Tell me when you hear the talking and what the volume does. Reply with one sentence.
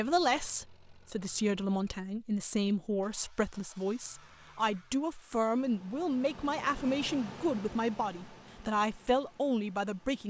The talking can be heard from 0.0 to 10.2 s, at a steady volume.